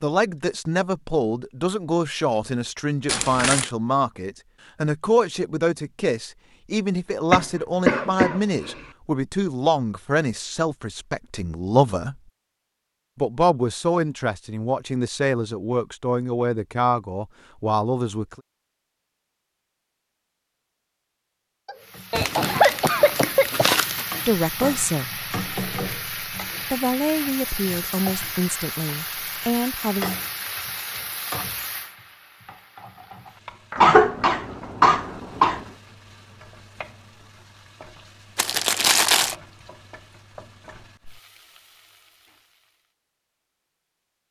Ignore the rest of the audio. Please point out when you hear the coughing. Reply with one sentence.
The coughing can be heard from 7.3 to 8.8 s, from 21.6 to 23.6 s and from 33.8 to 35.6 s.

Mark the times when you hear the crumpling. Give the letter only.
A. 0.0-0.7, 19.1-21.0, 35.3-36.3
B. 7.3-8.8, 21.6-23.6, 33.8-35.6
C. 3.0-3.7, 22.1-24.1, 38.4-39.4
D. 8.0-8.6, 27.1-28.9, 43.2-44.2
C.